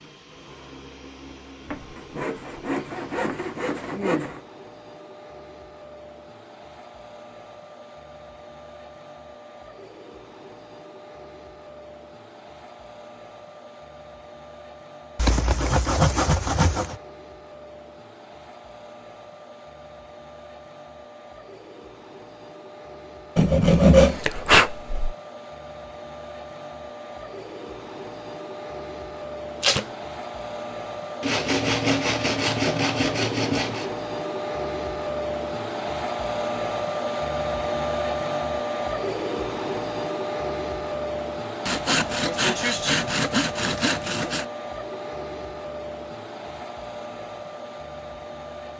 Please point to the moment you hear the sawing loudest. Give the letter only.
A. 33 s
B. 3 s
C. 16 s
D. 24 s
D.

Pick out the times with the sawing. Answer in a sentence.
The sawing can be heard from 1.6 to 4.4 s, from 15.2 to 16.9 s, from 23.4 to 25.1 s, from 31.2 to 33.9 s and from 41.6 to 44.5 s.